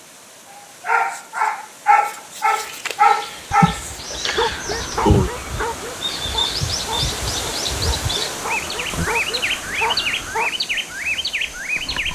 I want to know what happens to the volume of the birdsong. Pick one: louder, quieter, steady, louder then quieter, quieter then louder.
louder.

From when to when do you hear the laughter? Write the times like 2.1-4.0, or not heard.
3.5-5.3.